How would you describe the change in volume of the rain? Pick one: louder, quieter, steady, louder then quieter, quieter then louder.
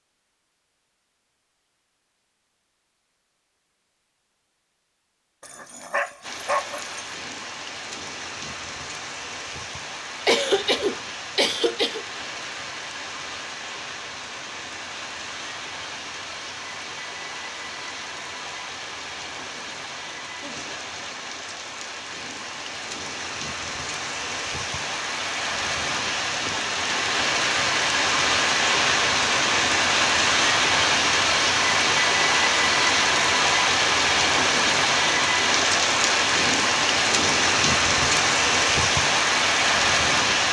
louder.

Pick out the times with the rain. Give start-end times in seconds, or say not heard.
6.2-40.4.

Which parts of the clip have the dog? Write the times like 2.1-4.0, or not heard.
5.4-7.0.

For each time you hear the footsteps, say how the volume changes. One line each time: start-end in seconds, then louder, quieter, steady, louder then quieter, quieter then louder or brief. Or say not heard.
not heard.